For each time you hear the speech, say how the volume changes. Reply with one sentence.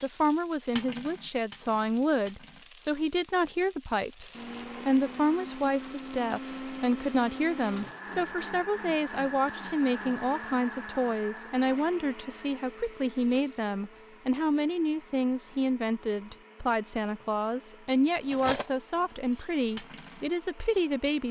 You can hear the speech from 0.0 to 21.2 s, at a steady volume.